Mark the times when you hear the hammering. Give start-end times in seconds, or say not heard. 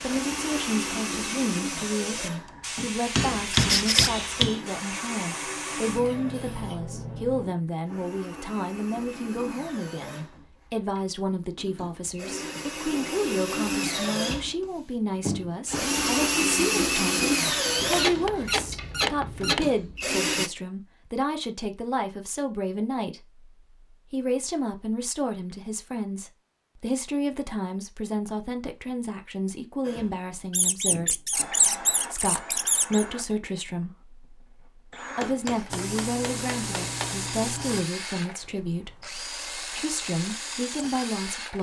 2.8-4.6, 17.9-19.6, 35.2-37.2.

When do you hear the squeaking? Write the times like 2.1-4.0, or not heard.
3.5-4.2, 17.8-19.6, 30.5-33.0.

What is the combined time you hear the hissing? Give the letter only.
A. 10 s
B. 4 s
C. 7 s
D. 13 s
A.